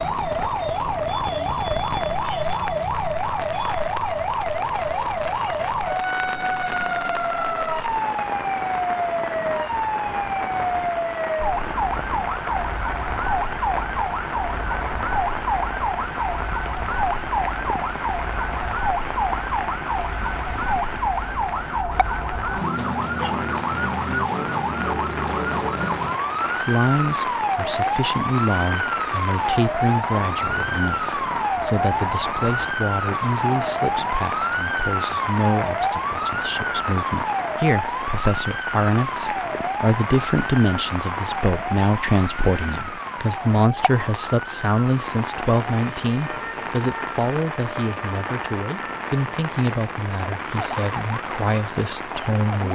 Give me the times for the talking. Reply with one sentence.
The talking can be heard from 26.6 to 52.7 s.